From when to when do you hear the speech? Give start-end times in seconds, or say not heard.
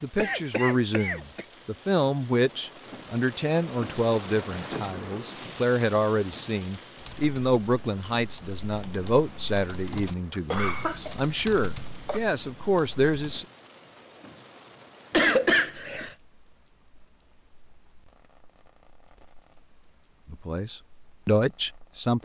0.0-13.4, 20.2-22.2.